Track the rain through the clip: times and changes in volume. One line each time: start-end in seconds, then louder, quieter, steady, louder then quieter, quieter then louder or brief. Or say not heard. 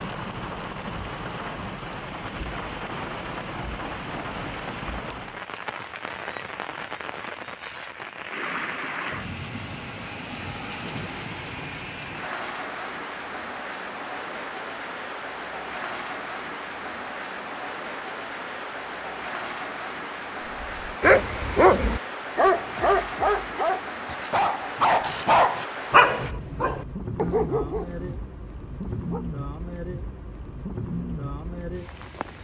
0.0-32.3 steady.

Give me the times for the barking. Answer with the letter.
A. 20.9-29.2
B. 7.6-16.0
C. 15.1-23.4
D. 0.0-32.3
A.